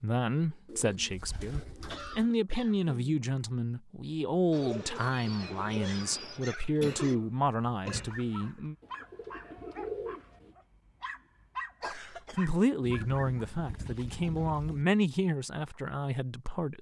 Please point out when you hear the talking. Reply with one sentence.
You can hear the talking from 0.0 to 8.8 s and from 11.9 to 16.7 s.